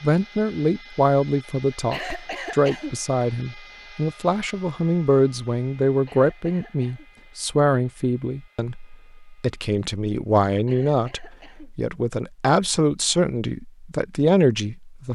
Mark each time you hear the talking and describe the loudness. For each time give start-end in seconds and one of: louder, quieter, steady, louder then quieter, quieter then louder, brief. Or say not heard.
0.0-15.1 steady.